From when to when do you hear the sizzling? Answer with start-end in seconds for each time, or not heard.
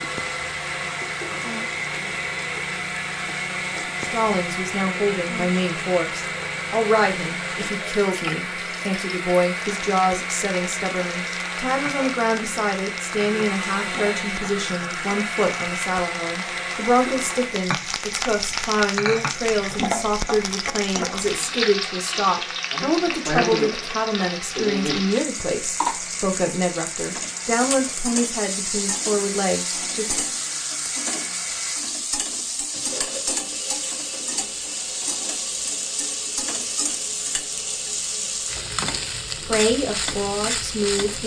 0.0-41.2.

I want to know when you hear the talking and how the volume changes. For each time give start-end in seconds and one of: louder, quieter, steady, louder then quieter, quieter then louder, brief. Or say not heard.
4.0-30.1 steady
39.3-41.2 brief.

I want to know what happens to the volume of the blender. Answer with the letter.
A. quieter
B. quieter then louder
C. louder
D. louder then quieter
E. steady
A.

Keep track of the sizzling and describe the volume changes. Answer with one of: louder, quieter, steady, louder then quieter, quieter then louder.
louder.